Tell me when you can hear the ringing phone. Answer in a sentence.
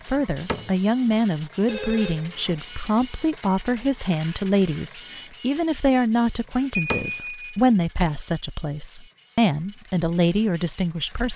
The ringing phone can be heard from 1.6 to 3.0 s and from 6.7 to 7.4 s.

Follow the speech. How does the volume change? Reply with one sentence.
The volume of the speech stays about the same.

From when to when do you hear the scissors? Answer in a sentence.
The scissors can't be heard in this clip.